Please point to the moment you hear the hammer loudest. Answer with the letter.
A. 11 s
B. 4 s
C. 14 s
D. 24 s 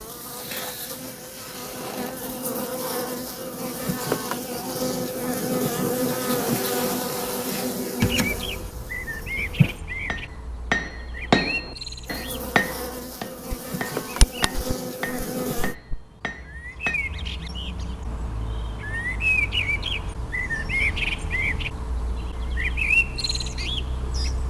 A.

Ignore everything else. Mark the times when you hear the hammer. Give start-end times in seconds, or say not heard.
10.1-17.0.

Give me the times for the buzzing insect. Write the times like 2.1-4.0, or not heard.
0.0-9.8, 12.1-15.8.